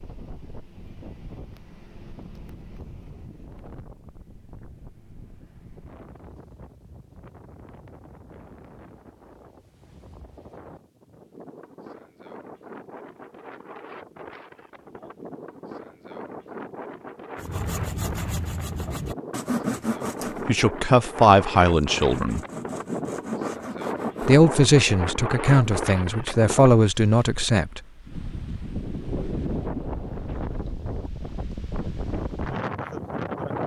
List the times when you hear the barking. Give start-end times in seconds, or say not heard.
not heard.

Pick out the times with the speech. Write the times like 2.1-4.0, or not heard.
20.4-22.4, 24.2-27.8.